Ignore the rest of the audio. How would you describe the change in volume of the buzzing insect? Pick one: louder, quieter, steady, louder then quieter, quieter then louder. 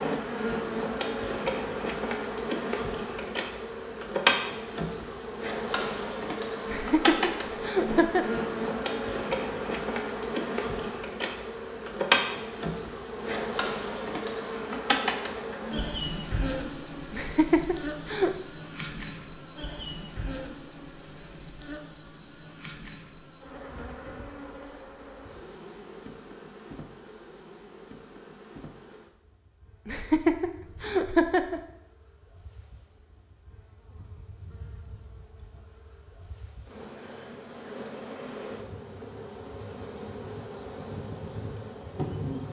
quieter then louder.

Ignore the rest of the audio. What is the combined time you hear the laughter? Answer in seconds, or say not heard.
5 s.